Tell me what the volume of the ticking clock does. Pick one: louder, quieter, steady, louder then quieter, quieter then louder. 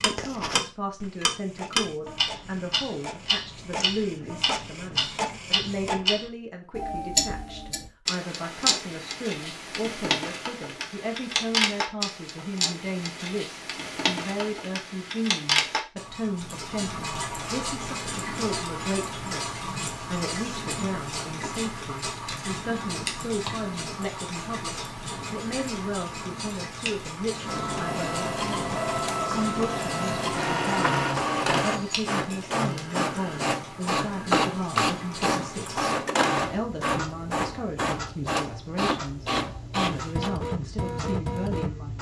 quieter.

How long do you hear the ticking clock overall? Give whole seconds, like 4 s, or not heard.
42 s.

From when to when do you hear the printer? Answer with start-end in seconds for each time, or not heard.
0.0-6.0, 27.4-41.9.